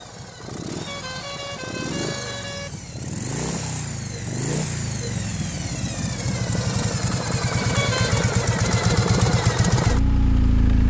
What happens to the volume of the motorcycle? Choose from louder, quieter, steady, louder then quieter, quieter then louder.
louder.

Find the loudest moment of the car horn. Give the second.
8 s.